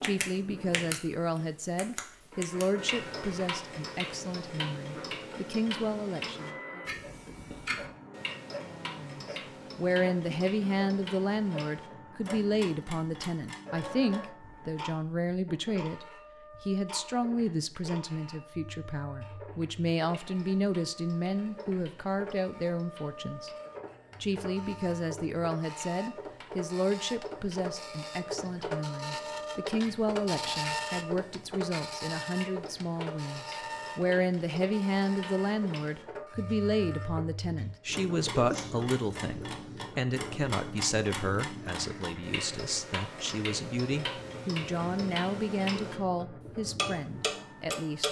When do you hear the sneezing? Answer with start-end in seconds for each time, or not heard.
38.2-38.9.